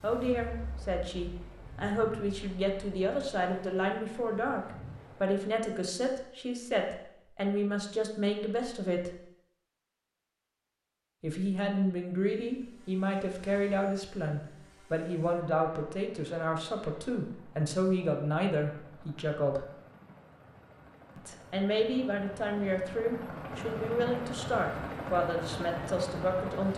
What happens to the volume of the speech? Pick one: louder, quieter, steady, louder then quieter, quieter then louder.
steady.